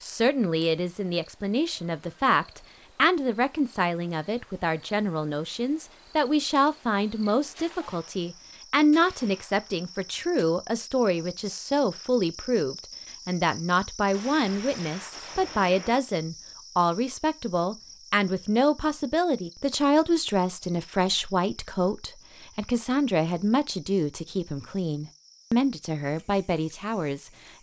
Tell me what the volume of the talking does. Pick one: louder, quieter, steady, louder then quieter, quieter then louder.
steady.